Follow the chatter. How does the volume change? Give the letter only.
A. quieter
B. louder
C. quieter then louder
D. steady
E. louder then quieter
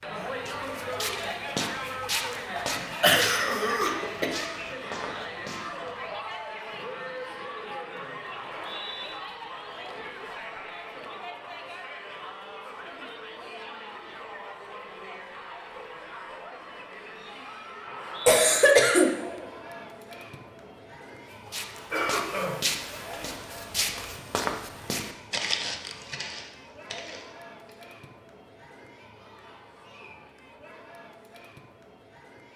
A.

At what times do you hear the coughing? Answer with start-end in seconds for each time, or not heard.
3.0-4.3, 18.2-19.1, 21.9-23.4.